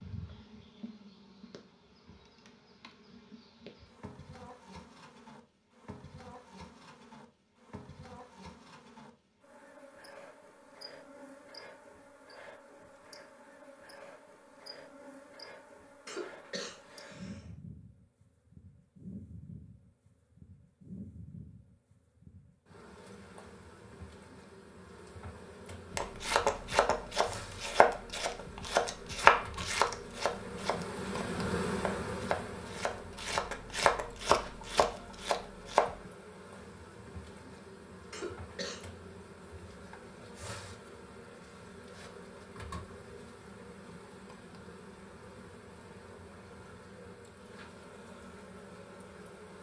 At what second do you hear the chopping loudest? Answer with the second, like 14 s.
29 s.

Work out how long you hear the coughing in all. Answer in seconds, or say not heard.
2 s.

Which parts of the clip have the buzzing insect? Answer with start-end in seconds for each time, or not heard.
0.0-49.5.